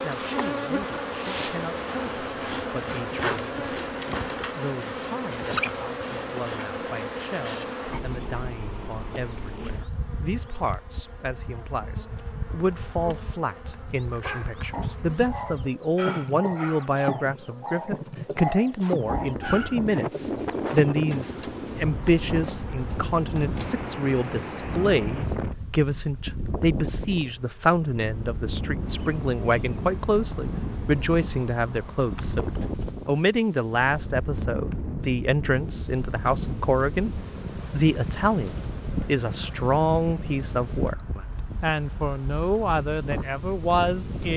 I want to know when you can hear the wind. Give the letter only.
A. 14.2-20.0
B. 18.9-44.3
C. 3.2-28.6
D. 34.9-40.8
B.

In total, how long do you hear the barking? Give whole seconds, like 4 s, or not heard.
6 s.